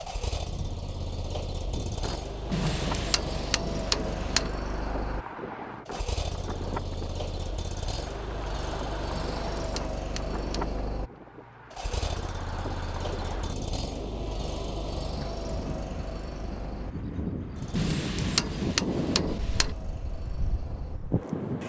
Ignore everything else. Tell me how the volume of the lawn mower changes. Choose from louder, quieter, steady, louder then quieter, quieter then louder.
quieter.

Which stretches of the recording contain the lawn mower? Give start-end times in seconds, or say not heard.
0.0-21.6.